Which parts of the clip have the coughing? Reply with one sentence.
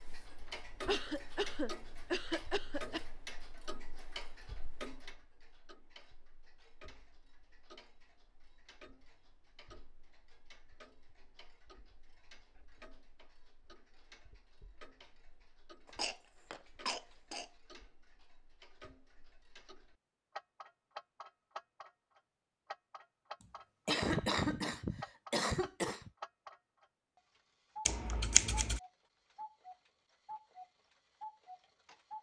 The coughing can be heard from 0.8 to 3.0 s, from 15.8 to 17.4 s and from 23.4 to 26.1 s.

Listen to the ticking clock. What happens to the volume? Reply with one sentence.
The loudness of the ticking clock goes down, then up.